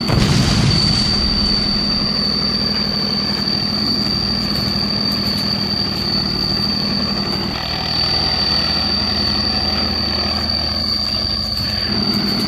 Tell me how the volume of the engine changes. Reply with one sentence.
The loudness of the engine stays about the same.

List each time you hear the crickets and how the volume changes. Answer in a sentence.
The crickets can be heard from 0.0 to 12.4 s, at a steady volume.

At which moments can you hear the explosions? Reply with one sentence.
The explosions can be heard from 0.1 to 2.1 s.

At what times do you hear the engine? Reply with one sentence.
You can hear the engine from 0.0 to 12.4 s.